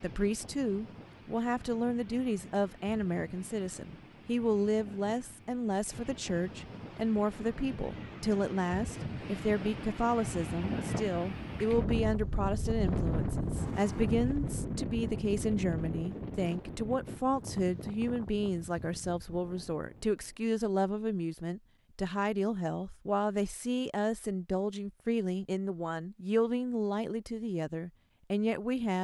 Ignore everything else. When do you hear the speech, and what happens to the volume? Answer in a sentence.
The speech can be heard from 0.0 to 29.0 s, at a steady volume.